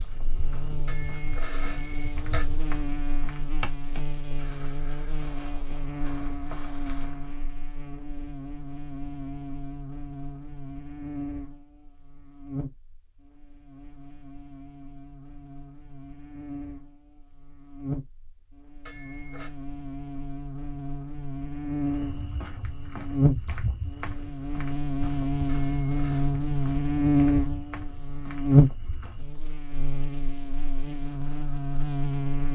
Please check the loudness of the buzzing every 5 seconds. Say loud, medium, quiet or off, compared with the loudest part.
quiet, quiet, quiet, quiet, medium, loud, medium.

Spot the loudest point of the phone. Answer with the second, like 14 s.
2 s.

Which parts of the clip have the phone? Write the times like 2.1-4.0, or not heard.
0.8-2.5, 18.9-19.5, 25.4-26.3.